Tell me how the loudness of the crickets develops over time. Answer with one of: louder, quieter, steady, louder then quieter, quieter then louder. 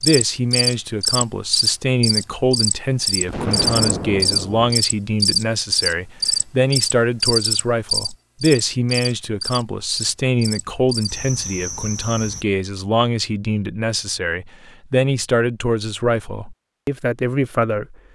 quieter.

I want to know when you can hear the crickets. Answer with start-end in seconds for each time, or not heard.
0.0-12.4.